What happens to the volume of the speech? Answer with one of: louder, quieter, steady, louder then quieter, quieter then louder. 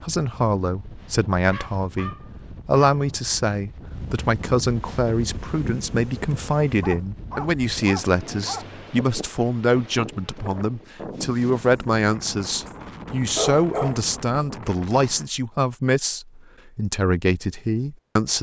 steady.